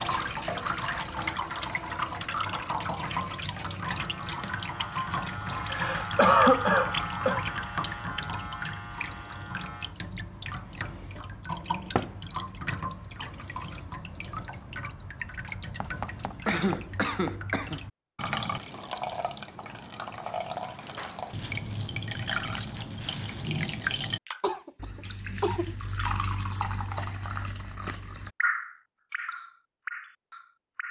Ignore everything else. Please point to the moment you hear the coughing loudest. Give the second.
6 s.